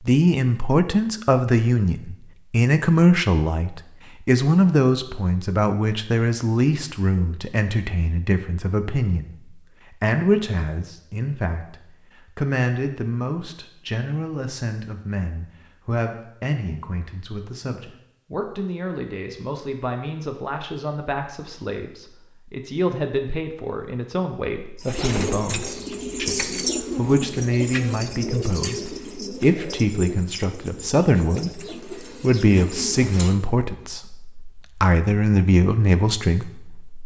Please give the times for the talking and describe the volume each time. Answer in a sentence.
The talking can be heard from 0.1 to 37.0 s, getting quieter then louder.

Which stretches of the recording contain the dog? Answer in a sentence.
The dog can't be heard in this clip.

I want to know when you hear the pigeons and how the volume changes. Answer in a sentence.
You can hear the pigeons from 24.8 to 33.4 s, getting quieter.